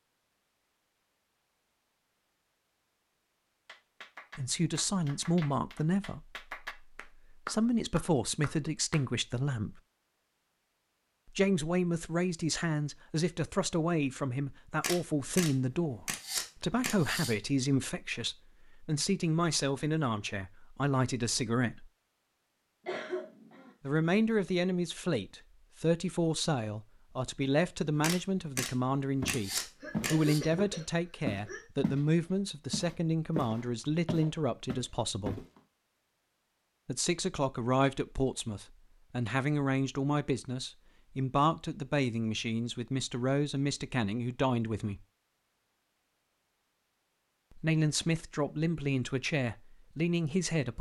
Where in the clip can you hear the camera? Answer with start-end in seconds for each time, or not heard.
14.7-17.4, 27.9-30.4.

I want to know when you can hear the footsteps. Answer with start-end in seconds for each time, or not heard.
29.2-32.0, 32.7-35.6.